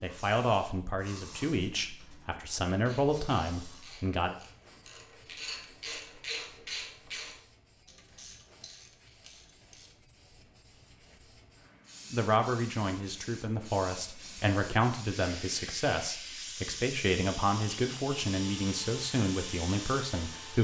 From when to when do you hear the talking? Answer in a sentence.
The talking can be heard from 0.0 to 4.3 s and from 12.1 to 20.5 s.